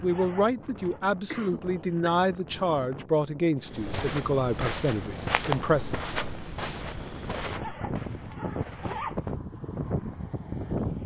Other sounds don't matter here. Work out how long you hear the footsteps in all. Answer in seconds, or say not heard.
6 s.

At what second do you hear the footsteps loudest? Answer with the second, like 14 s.
5 s.